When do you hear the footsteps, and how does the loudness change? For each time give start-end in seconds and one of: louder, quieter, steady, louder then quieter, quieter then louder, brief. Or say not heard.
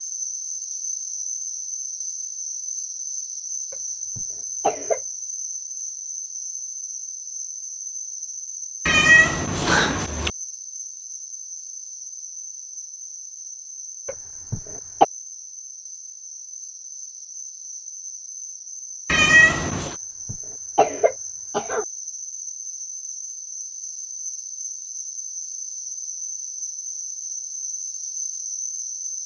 not heard.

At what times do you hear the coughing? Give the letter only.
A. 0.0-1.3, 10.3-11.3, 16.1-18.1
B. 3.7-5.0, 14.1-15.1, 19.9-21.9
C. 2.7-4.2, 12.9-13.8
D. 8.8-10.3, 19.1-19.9
B.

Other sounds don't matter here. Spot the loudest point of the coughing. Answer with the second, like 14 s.
15 s.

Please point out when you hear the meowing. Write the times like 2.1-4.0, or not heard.
8.8-10.3, 19.1-19.9.